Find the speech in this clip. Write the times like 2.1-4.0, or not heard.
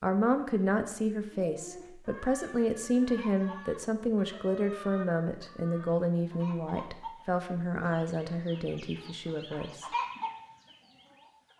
0.0-9.8.